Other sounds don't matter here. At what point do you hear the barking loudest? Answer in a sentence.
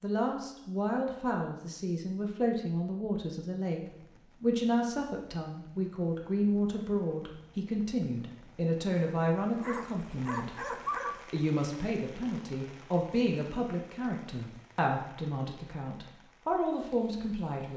The loudest moment of the barking is at 11 seconds.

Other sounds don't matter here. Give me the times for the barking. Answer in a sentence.
You can hear the barking from 9.6 to 11.2 s.